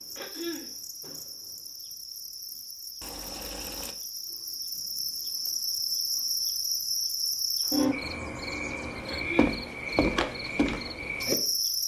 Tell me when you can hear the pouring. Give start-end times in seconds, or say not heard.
3.0-4.0, 8.0-9.3.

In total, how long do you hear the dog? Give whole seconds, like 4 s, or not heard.
not heard.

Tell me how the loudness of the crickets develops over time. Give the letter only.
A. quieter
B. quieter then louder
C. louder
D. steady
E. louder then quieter
C.